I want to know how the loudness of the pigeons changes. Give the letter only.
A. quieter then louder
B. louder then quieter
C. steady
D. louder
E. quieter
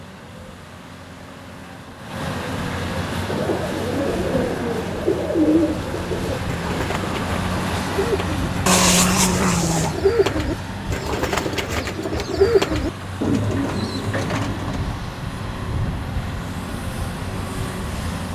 A.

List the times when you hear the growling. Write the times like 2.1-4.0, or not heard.
8.7-9.9.